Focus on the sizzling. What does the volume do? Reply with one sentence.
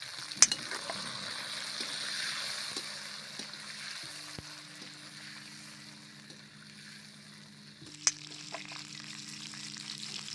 The loudness of the sizzling goes down, then up.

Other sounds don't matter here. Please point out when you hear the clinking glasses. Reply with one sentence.
You can hear the clinking glasses from 0.4 to 0.9 s and from 8.1 to 8.6 s.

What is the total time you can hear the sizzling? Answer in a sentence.
You can hear the sizzling for 10 seconds altogether.